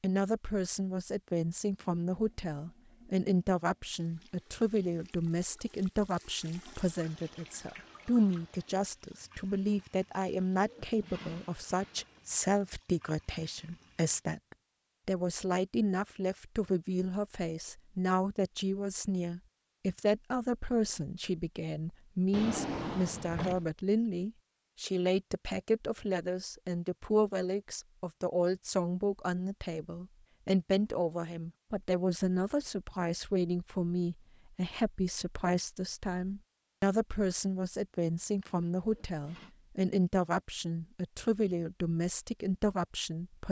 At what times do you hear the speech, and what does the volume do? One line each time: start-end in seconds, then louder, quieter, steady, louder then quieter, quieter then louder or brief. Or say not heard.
0.0-43.4 steady.